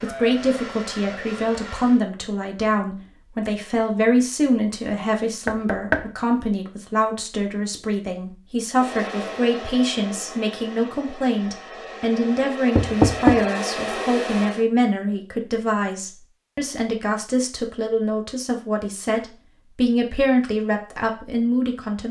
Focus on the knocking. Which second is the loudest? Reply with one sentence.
The loudest moment of the knocking is at 13 seconds.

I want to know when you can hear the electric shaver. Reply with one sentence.
You can't hear the electric shaver here.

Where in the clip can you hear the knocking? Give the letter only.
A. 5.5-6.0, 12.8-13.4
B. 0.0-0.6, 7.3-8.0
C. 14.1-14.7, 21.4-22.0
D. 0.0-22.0
A.